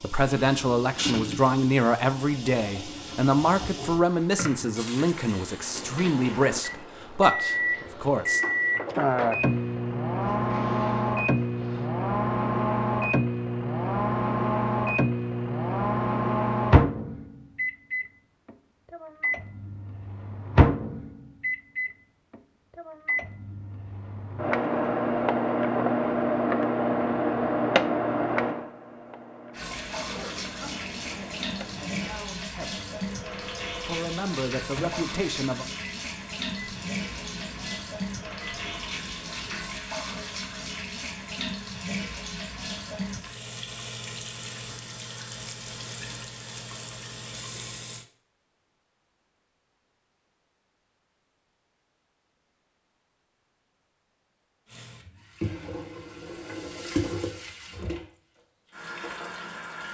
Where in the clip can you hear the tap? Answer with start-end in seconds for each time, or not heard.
0.0-11.9, 29.5-48.0, 54.6-59.8.